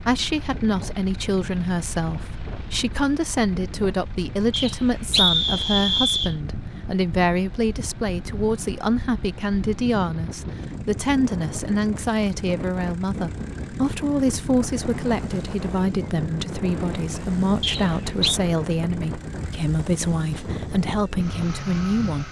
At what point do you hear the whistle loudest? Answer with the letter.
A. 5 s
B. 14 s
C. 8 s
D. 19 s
A.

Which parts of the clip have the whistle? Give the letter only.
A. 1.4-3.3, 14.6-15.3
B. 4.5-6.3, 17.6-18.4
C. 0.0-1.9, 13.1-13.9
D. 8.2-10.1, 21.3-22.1
B.